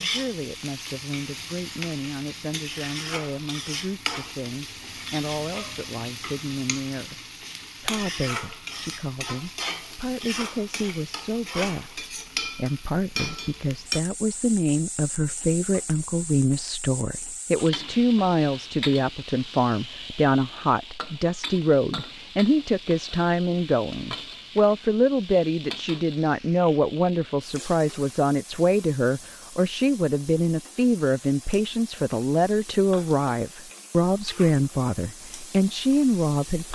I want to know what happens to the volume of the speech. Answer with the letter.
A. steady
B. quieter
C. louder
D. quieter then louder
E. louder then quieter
C.